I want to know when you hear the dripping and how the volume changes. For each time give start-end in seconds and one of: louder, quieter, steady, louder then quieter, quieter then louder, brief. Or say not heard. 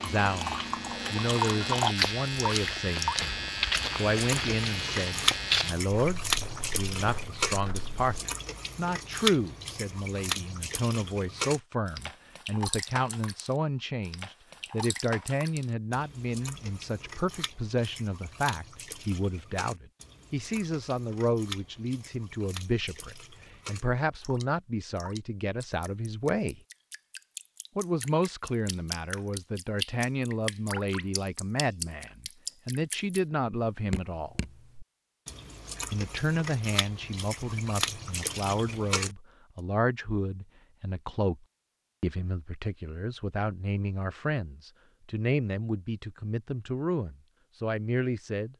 0.0-39.1 quieter then louder.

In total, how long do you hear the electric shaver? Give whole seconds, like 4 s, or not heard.
6 s.